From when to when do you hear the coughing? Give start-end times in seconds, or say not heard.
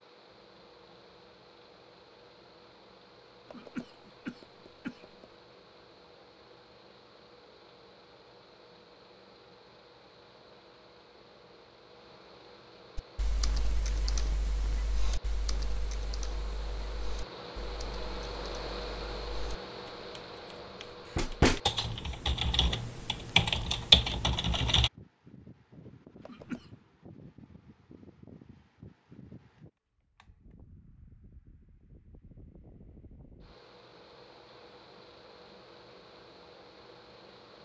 3.5-5.3, 26.2-26.7.